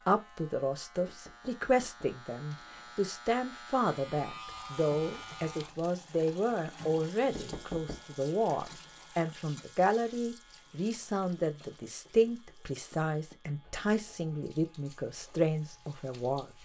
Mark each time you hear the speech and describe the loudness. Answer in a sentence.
The speech can be heard from 0.1 to 16.6 s, at a steady volume.